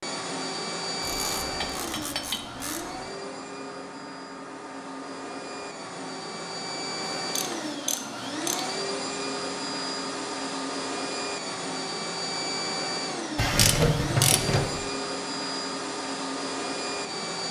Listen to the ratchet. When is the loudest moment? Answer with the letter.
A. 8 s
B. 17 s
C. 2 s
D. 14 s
D.